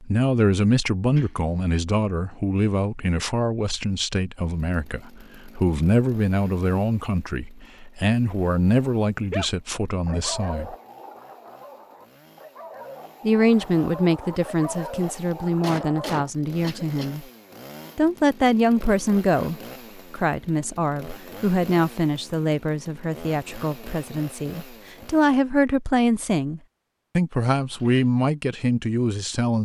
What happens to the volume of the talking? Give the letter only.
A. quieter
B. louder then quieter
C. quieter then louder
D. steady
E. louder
D.